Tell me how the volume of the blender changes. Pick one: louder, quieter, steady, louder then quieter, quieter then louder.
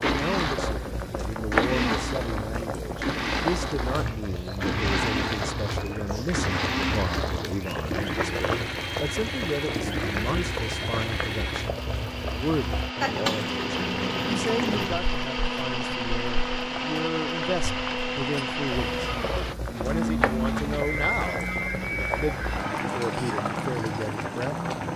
steady.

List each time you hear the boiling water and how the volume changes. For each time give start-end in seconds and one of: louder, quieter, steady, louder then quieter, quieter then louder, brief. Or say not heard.
0.0-24.9 quieter then louder.